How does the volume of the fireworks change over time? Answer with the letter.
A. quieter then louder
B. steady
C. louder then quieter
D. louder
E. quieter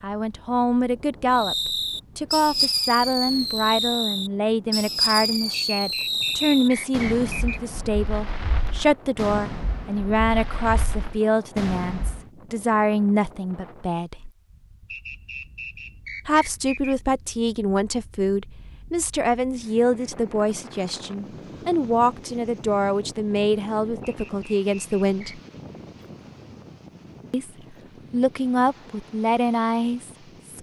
E.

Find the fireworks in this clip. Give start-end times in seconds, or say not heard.
1.3-12.2.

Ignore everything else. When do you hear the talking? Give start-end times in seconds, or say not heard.
0.0-14.3, 16.2-25.4, 27.3-30.5.